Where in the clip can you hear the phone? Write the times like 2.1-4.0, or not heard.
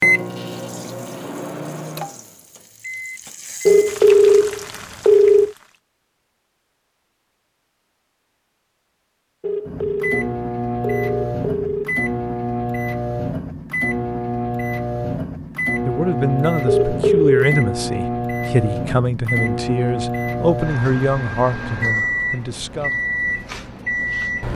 3.6-5.5, 9.4-12.1, 16.6-17.6.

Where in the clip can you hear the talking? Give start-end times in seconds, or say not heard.
15.8-22.9.